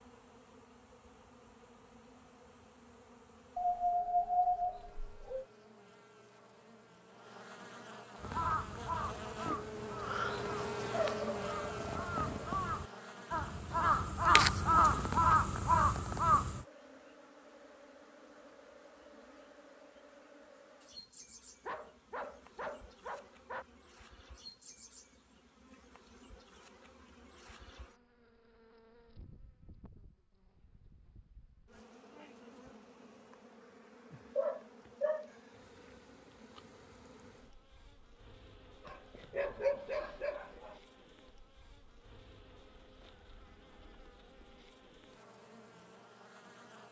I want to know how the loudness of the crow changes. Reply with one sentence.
The volume of the crow goes up.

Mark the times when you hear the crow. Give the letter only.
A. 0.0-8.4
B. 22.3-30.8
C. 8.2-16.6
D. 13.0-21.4
C.